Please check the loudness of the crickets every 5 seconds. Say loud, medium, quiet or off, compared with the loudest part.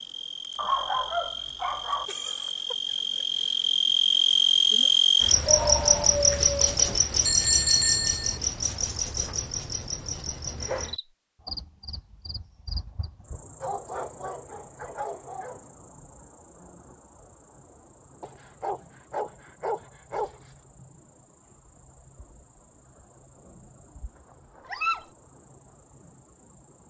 loud, loud, quiet, quiet, quiet, quiet.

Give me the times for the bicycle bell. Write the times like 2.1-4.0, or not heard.
7.2-8.4.